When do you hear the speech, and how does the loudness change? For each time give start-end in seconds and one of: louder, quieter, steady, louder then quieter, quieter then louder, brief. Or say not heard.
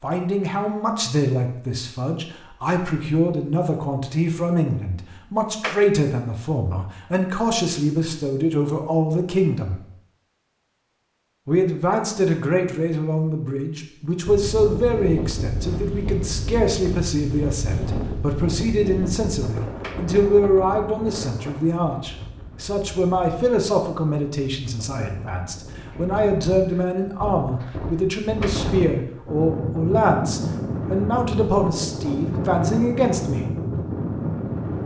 0.0-9.8 steady
11.4-33.5 steady.